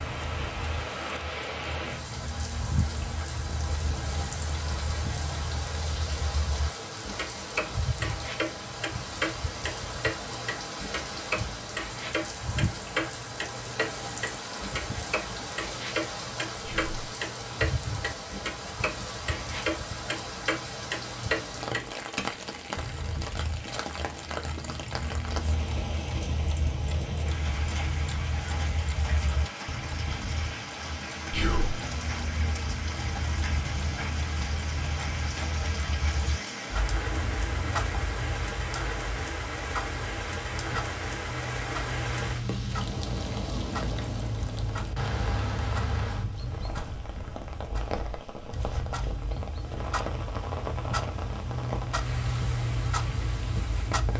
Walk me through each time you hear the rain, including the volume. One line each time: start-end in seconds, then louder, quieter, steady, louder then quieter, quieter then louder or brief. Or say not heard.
0.0-54.1 steady.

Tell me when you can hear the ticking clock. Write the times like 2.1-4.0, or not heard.
0.0-54.1.